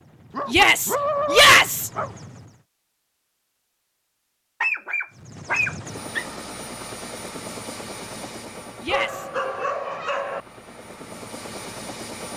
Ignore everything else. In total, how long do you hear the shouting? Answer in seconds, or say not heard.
2 s.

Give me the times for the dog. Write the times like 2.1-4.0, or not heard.
0.3-2.1, 4.6-6.3, 8.9-10.4.